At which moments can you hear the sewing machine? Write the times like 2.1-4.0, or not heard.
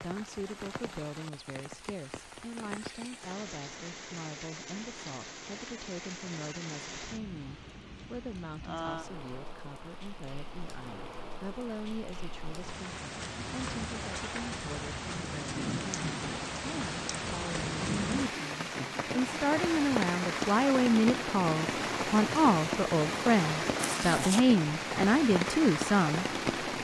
not heard.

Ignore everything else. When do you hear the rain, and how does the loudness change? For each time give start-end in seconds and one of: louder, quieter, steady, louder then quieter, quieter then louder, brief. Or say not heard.
0.0-26.7 louder.